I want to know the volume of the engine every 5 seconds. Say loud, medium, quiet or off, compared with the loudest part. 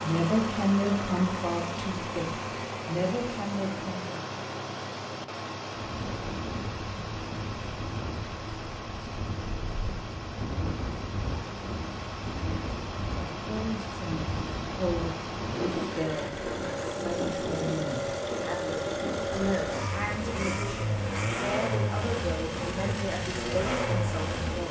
loud, medium, medium, loud, loud.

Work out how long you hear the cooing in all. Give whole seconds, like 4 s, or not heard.
not heard.